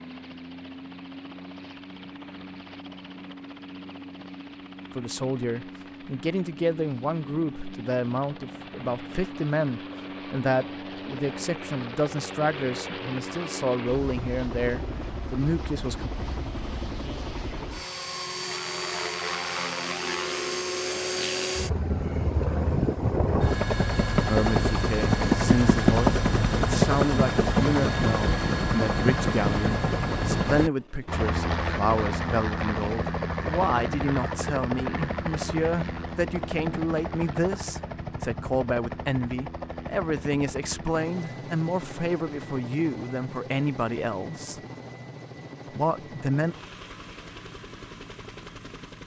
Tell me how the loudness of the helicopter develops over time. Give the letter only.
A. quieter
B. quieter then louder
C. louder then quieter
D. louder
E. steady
C.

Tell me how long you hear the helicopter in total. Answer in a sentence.
You can hear the helicopter for 49 seconds altogether.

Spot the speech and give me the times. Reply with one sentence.
The speech can be heard from 5.0 to 16.1 s, from 24.2 to 44.6 s and from 45.8 to 46.5 s.